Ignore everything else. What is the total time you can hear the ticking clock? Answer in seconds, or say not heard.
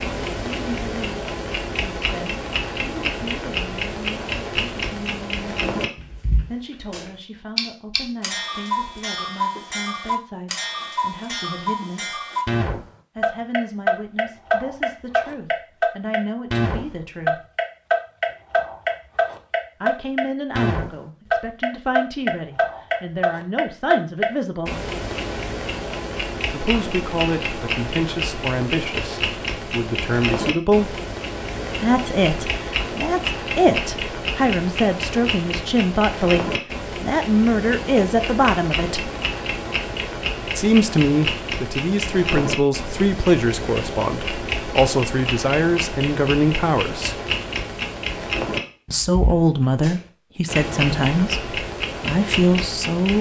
53 s.